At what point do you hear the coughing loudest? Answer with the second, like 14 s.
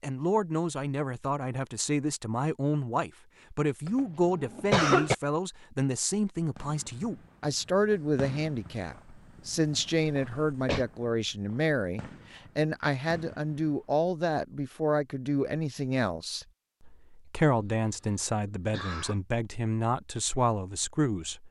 5 s.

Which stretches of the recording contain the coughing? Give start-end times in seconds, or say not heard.
3.9-5.2, 10.1-10.8, 18.7-19.1.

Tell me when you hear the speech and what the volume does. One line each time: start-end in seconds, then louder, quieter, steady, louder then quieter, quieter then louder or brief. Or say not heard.
0.0-21.4 steady.